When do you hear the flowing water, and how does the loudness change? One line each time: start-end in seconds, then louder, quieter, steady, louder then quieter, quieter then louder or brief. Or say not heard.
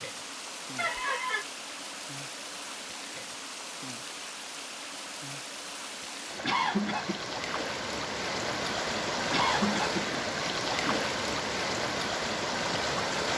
0.0-13.3 louder.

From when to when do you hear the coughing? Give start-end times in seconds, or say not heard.
0.8-1.4, 6.4-7.2, 9.3-11.1.